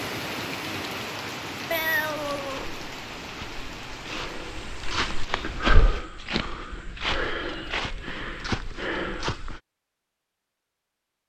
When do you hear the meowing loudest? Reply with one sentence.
The loudest moment of the meowing is at 2 seconds.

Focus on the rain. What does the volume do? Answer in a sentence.
The volume of the rain goes down.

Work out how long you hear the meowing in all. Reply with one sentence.
The meowing can be heard for 3 seconds in total.